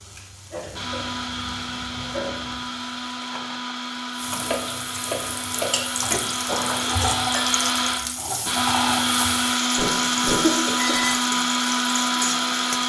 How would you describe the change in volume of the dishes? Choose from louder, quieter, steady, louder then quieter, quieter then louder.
steady.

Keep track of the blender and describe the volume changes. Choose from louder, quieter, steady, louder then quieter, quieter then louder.
louder.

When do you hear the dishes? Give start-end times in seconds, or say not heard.
4.2-11.2.